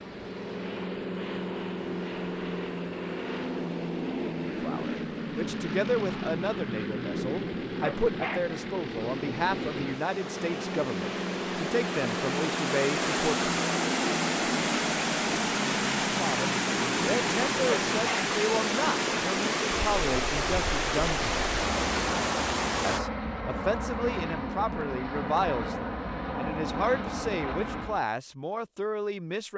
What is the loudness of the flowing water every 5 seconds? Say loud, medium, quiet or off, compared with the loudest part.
quiet, quiet, loud, loud, loud, off.